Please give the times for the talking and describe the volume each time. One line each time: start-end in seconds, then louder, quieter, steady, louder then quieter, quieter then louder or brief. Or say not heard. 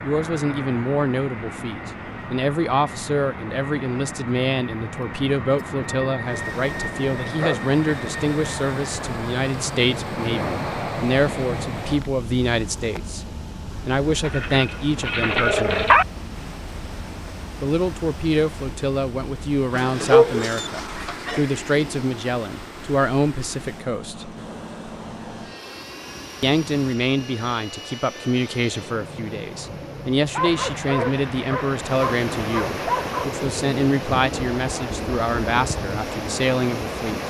0.0-15.9 steady
17.6-24.3 steady
26.4-37.2 steady.